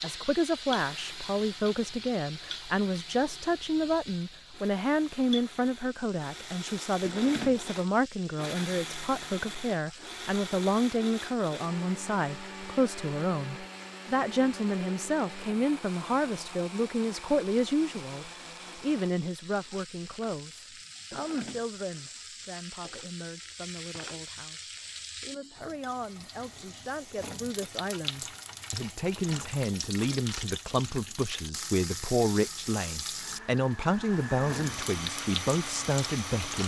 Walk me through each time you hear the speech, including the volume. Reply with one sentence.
You can hear the speech from 0.0 to 36.6 s, getting quieter then louder.